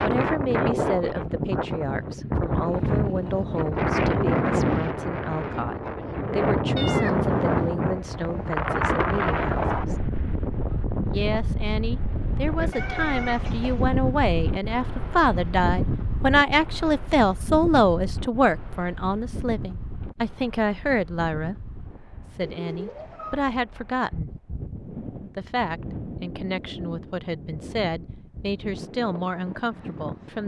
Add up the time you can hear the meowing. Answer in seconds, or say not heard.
3 s.